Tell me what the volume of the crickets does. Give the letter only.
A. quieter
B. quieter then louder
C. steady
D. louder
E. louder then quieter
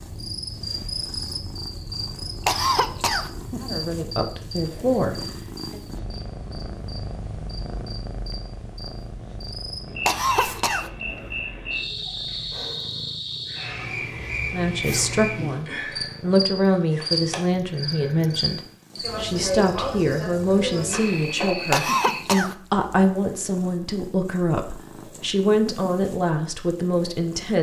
B.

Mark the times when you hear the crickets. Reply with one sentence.
You can hear the crickets from 0.0 to 22.2 s.